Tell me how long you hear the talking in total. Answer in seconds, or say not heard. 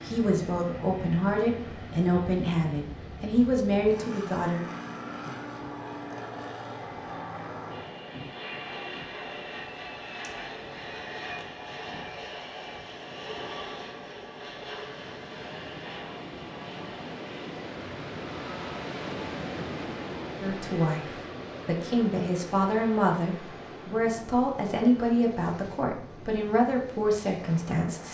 12 s.